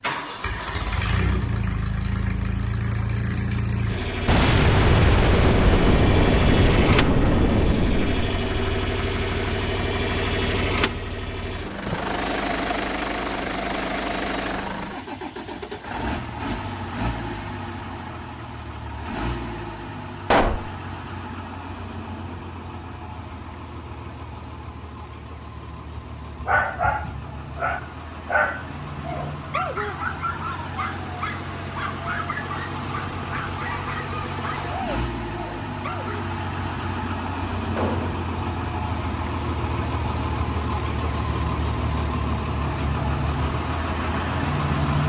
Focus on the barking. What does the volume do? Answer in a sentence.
The loudness of the barking goes down.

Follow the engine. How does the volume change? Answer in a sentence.
The loudness of the engine goes down, then up.